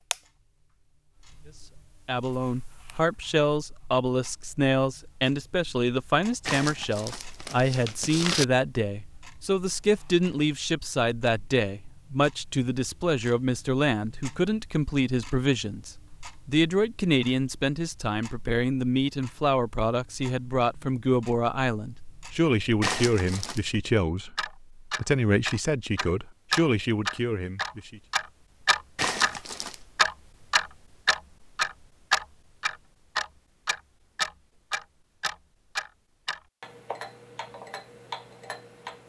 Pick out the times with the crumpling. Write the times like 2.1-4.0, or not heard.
6.5-8.4, 22.8-23.6, 28.9-29.8.